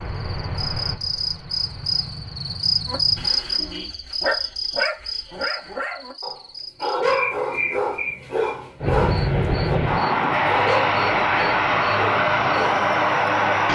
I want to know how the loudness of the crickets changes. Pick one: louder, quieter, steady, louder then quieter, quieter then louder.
quieter.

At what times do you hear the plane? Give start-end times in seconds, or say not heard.
0.0-3.3, 8.8-13.6.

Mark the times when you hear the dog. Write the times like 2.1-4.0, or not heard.
2.9-12.9.